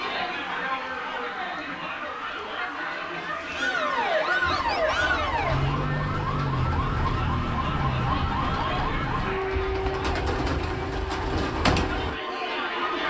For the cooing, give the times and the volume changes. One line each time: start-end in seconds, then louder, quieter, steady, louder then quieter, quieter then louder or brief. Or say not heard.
4.4-12.2 louder.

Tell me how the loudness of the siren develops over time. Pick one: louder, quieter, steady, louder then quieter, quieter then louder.
louder then quieter.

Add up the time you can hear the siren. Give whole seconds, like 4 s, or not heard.
13 s.